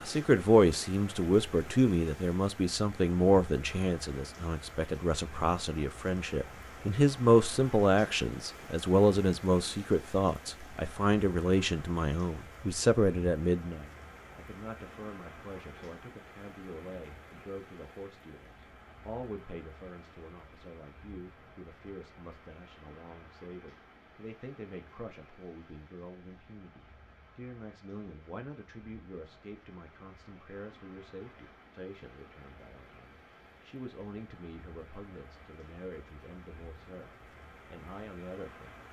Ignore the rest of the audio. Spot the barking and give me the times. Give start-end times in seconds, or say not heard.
not heard.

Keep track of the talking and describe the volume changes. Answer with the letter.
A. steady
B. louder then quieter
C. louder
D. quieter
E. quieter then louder
D.